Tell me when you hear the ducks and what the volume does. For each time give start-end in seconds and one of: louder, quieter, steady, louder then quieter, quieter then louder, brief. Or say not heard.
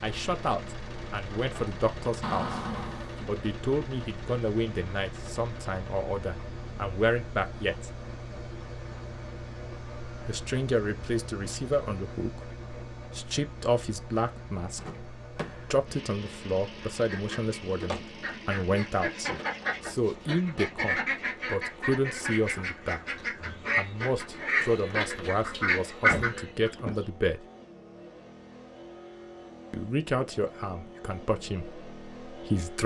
16.9-26.7 louder.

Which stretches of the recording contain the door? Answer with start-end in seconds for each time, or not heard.
2.2-3.3, 14.8-15.8, 26.1-27.1.